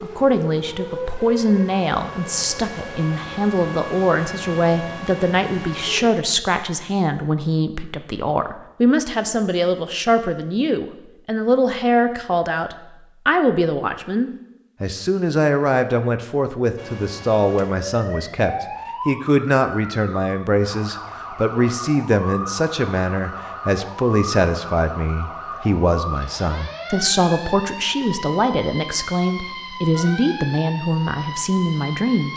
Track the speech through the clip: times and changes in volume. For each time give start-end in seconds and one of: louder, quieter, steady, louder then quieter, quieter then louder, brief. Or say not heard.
0.0-32.3 steady.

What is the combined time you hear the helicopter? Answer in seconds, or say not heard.
not heard.